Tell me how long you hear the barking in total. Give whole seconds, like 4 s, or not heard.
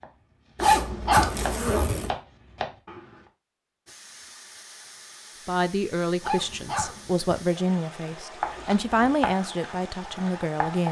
2 s.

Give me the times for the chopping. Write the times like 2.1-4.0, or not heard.
0.0-3.2, 8.1-10.8.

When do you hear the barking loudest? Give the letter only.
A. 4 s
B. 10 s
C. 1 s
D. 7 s
C.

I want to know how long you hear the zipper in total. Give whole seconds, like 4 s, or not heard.
2 s.